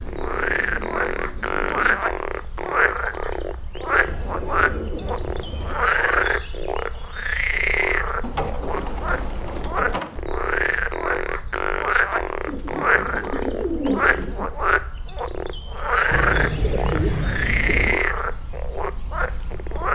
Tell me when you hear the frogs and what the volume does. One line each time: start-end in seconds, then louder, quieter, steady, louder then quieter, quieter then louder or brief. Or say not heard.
0.0-19.9 steady.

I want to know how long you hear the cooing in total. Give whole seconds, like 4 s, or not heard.
10 s.